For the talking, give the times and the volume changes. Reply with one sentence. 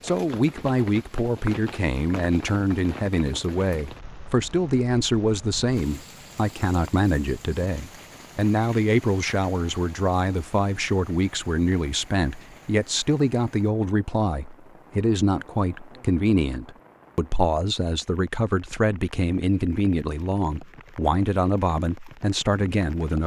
You can hear the talking from 0.0 to 23.2 s, at a steady volume.